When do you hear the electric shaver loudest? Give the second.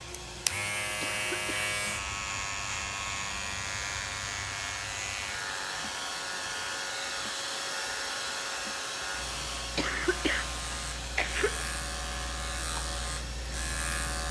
1 s.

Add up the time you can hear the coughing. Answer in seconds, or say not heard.
2 s.